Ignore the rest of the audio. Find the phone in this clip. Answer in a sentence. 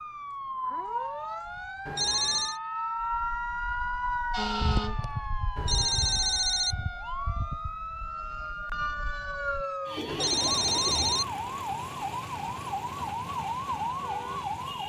You can hear the phone from 1.9 to 2.6 s, from 5.5 to 6.8 s and from 10.1 to 11.2 s.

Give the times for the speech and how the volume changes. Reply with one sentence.
The speech can't be heard in this clip.